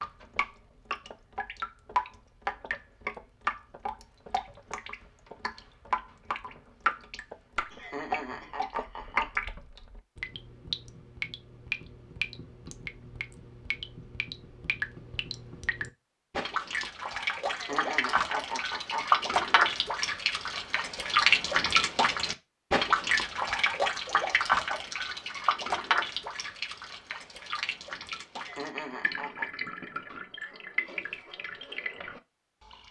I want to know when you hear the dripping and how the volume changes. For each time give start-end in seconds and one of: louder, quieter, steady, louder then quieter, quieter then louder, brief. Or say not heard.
0.0-32.8 louder then quieter.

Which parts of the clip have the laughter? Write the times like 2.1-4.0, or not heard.
7.7-9.3, 17.4-19.1, 28.4-29.5.